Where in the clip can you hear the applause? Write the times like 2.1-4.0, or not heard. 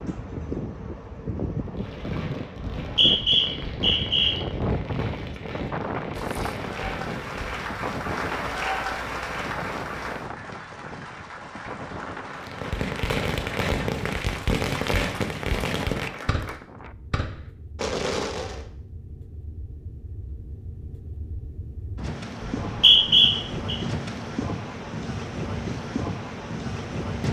6.2-16.6.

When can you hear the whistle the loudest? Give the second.
23 s.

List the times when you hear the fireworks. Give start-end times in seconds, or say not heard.
1.6-7.8, 12.3-18.6.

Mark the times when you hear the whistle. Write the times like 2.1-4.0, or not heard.
2.5-4.3, 22.6-23.8.